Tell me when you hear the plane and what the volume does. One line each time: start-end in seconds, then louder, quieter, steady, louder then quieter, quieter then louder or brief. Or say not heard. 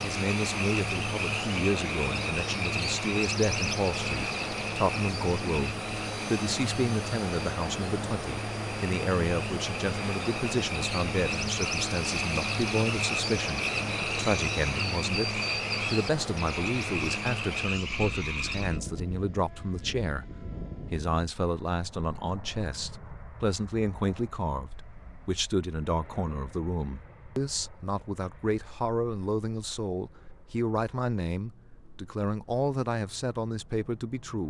0.0-34.4 quieter.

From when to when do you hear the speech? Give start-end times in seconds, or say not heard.
0.0-34.4.